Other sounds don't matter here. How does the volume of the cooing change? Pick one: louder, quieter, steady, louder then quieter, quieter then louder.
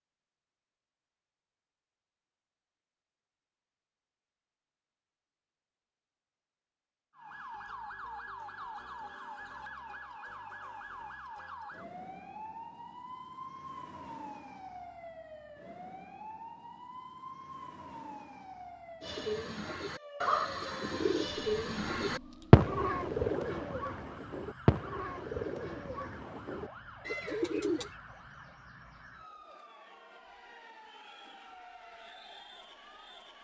louder then quieter.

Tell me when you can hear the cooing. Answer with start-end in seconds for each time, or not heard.
19.0-27.9.